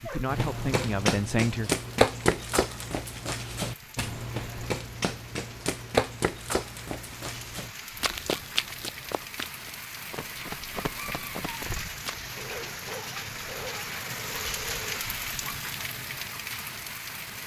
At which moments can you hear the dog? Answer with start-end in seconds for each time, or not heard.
0.1-0.9, 12.3-15.1.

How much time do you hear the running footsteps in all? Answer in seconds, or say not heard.
12 s.